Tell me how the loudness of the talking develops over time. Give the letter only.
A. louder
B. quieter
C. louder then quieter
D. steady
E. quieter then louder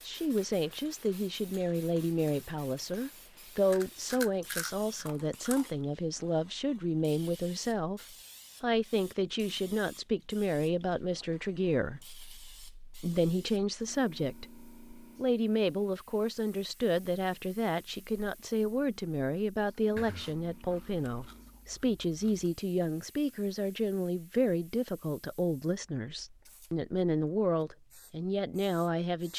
D.